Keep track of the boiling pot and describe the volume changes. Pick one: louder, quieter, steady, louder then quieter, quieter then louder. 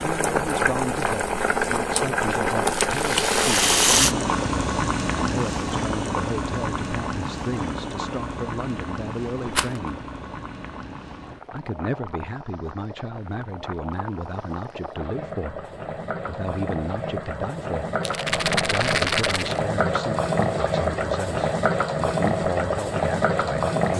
quieter then louder.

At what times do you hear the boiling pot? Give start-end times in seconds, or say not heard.
0.0-23.9.